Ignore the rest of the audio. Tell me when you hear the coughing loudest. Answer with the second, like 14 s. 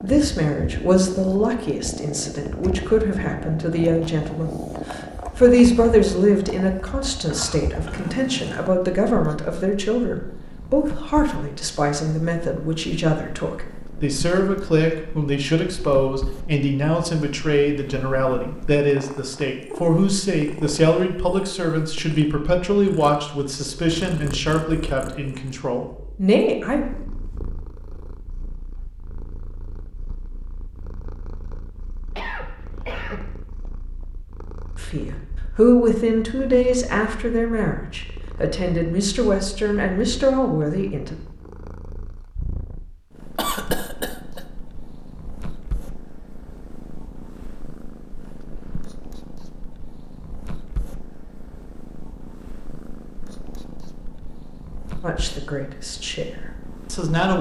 44 s.